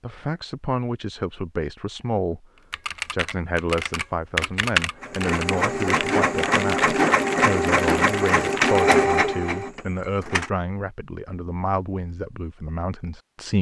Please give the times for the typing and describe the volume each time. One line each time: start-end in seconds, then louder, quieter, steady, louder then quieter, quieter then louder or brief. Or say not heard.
2.7-8.8 louder then quieter.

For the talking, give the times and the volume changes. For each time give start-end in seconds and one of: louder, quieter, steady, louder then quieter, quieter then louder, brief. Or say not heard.
0.0-2.5 brief
3.1-13.5 steady.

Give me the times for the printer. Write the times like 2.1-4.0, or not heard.
5.0-10.5.